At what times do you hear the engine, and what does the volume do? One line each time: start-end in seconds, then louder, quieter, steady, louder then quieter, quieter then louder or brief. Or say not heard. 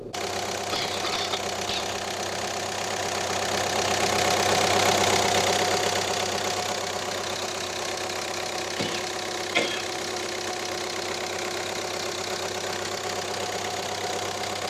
0.0-14.6 louder then quieter.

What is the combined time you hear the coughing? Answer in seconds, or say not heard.
3 s.